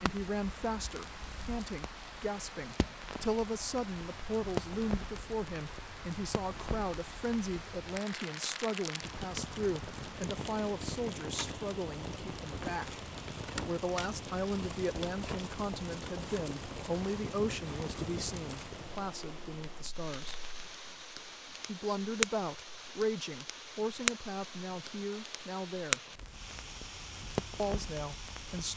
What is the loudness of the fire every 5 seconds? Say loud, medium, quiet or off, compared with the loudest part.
medium, medium, medium, medium, loud, loud.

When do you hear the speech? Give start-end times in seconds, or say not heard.
0.0-13.0, 13.7-20.4, 21.6-26.0, 27.6-28.7.